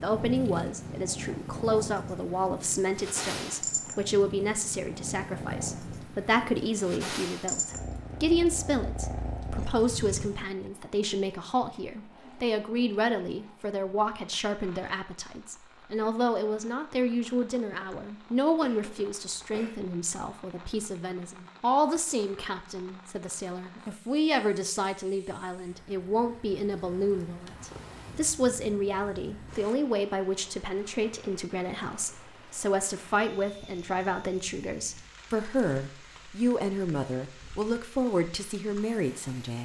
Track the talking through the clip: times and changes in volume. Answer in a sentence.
The talking can be heard from 0.0 to 39.6 s, at a steady volume.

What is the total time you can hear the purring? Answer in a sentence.
The purring can be heard for 13 seconds in total.